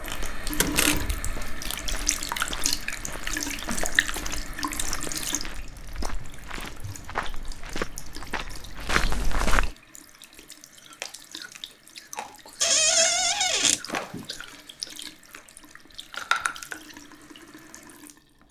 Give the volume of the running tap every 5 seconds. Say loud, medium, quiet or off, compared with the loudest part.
loud, medium, quiet, quiet.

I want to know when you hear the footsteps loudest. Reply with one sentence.
The loudest moment of the footsteps is at 9 seconds.